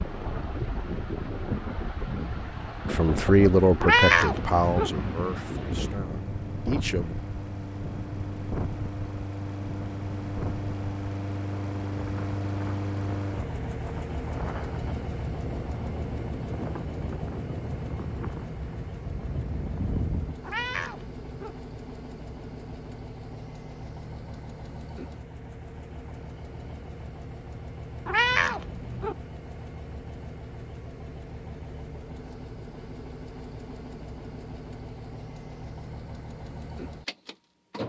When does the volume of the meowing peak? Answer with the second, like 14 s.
4 s.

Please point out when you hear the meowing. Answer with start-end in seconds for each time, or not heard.
3.8-4.9, 20.4-21.6, 28.1-29.1.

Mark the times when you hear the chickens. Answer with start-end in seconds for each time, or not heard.
not heard.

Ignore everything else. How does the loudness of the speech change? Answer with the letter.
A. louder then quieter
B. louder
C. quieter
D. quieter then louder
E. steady
D.